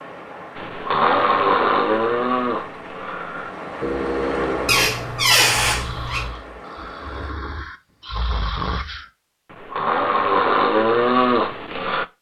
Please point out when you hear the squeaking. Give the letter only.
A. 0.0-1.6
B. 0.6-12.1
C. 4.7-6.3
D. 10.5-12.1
C.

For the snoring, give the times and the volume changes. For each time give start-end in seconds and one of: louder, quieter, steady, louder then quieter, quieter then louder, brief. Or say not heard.
0.6-12.1 quieter then louder.